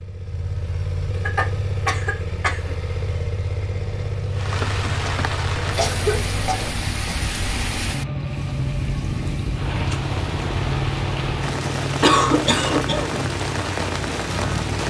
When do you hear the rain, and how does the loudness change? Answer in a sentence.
You can hear the rain from 4.3 to 14.8 s, at a steady volume.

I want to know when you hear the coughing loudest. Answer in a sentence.
The loudest moment of the coughing is at 12 seconds.